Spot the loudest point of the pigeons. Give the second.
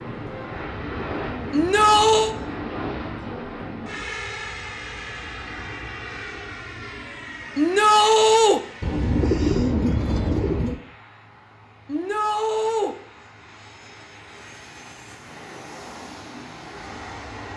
9 s.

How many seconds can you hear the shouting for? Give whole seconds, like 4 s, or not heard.
3 s.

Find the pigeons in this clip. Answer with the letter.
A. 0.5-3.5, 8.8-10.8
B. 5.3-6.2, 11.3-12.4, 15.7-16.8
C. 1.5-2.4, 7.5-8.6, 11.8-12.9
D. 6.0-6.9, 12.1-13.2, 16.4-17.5
A.